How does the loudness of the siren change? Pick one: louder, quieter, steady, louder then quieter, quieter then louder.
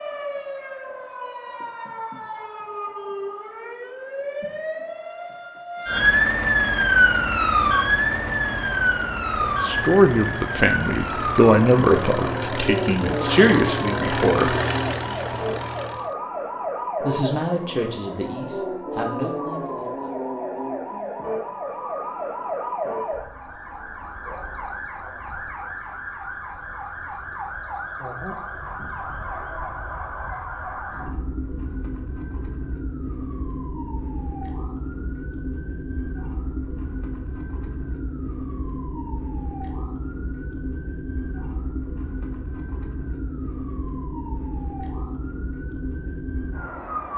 quieter.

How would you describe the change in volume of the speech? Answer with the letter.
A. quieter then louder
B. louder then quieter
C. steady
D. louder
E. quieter
E.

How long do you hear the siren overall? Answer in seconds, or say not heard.
47 s.